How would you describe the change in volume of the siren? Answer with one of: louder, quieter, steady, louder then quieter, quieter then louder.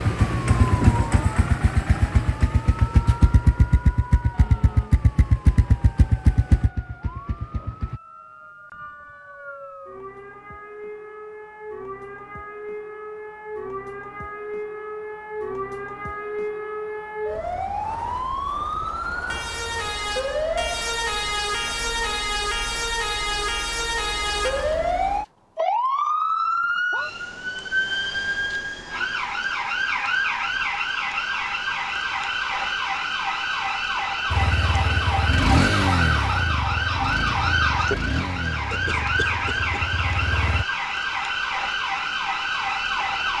louder.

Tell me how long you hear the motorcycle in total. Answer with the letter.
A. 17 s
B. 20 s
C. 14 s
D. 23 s
C.